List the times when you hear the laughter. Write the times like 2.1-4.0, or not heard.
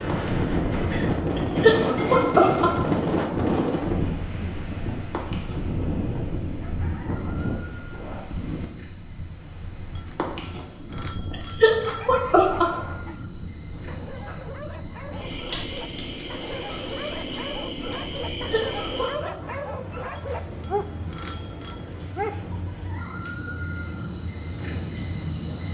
1.4-2.7, 11.3-12.7, 18.5-19.3.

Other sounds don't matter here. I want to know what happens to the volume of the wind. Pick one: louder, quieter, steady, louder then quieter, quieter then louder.
quieter.